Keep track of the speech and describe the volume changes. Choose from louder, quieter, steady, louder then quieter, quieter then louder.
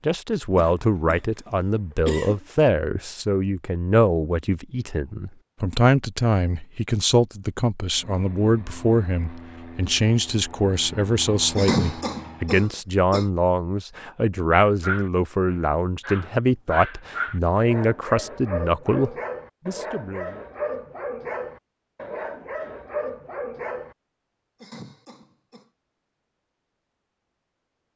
steady.